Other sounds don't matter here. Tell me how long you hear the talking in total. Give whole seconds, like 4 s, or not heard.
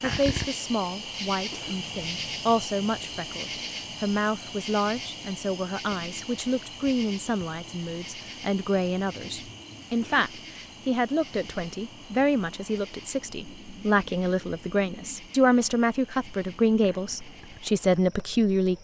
19 s.